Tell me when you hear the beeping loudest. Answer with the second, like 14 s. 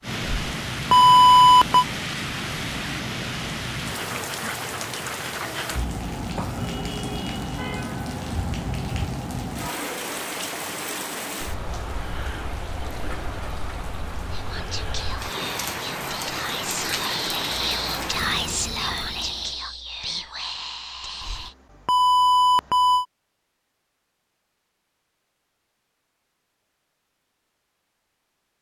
1 s.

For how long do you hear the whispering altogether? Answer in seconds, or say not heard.
7 s.